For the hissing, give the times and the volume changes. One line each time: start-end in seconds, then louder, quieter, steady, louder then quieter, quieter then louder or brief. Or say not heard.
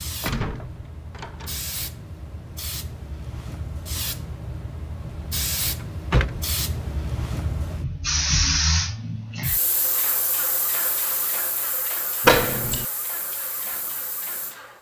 0.0-14.7 louder then quieter.